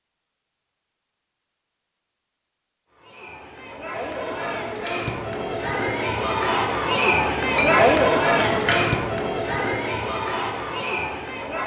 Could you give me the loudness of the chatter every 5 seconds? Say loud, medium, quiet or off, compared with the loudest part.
medium, loud, medium.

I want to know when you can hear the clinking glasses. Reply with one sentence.
You can hear the clinking glasses from 7.5 to 9.1 s.